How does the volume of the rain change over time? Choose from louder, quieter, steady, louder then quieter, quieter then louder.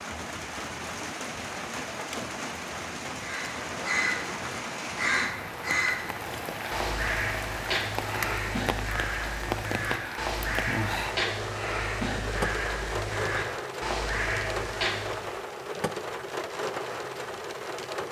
steady.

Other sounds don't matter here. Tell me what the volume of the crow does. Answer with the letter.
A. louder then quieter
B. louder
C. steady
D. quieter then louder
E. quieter
C.